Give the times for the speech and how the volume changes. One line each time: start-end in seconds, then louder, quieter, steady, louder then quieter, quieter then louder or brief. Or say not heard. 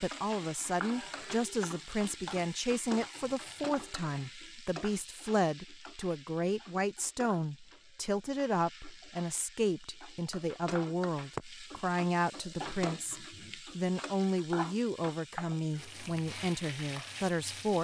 0.0-17.7 steady.